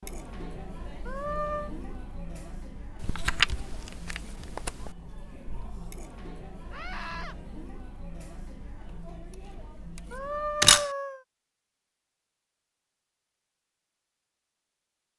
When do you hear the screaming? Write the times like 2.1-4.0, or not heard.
1.1-1.7, 6.7-7.3, 10.1-11.2.